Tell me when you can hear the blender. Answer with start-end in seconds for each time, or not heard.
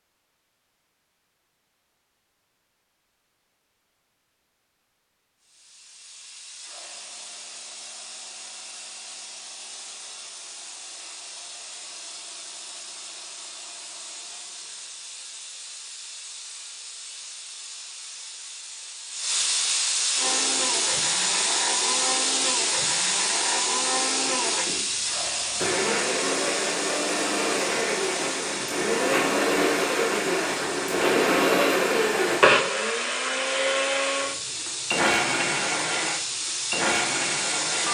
20.1-37.8.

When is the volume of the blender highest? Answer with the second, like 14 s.
32 s.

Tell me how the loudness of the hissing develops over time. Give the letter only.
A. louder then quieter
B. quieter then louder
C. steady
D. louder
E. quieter
A.